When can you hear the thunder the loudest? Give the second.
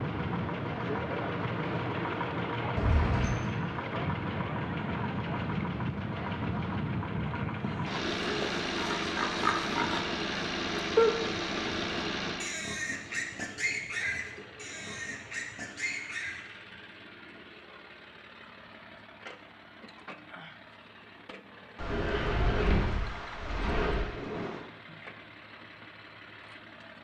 24 s.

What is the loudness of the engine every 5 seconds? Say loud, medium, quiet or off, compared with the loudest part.
loud, loud, loud, quiet, quiet, quiet.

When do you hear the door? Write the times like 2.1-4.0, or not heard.
2.8-3.5, 21.8-24.1.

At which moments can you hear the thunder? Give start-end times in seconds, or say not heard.
21.8-24.7.